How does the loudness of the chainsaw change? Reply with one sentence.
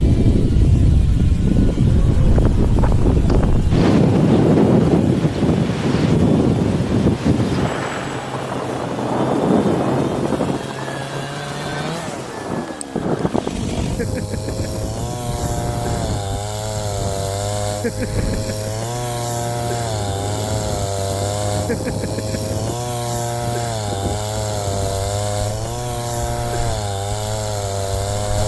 The volume of the chainsaw goes up.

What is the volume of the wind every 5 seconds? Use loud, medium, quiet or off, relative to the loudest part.
loud, loud, medium, quiet, quiet, quiet.